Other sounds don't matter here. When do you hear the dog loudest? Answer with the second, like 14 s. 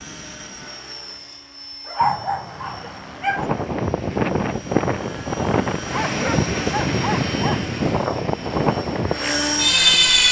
2 s.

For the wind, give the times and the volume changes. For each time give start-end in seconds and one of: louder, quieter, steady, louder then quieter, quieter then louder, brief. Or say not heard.
3.2-10.2 steady.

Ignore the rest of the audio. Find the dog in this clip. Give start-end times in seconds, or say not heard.
1.9-3.5, 5.9-7.7.